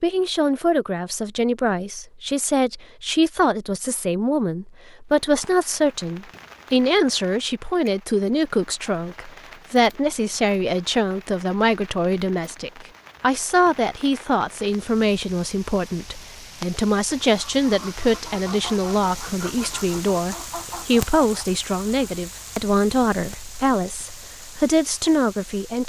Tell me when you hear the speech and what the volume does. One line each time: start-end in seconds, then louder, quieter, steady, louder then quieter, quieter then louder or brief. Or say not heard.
0.0-25.8 steady.